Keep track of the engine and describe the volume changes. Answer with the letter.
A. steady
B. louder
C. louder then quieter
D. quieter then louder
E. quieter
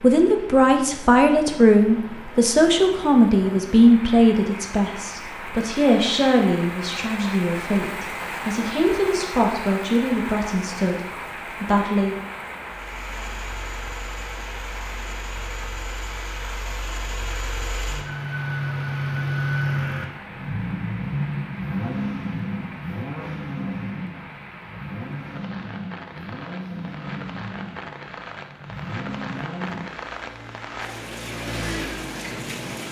C.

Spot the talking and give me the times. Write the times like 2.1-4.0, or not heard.
0.0-11.0, 11.6-12.2.